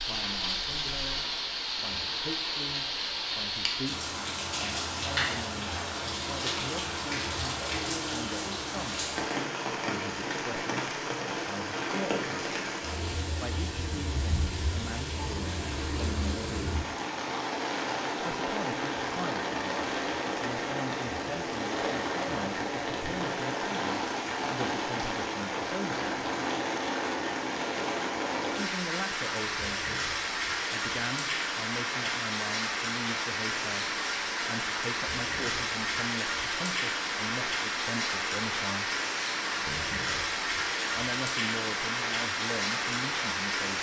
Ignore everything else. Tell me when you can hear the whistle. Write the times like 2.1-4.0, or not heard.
not heard.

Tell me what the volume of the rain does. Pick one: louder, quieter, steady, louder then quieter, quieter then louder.
steady.